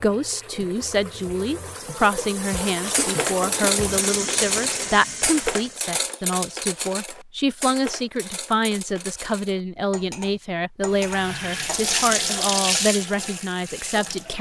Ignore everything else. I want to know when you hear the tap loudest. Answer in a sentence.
The loudest moment of the tap is at 12 seconds.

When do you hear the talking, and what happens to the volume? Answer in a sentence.
You can hear the talking from 0.0 to 14.3 s, at a steady volume.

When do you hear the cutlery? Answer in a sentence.
The cutlery can be heard from 2.9 to 11.9 s.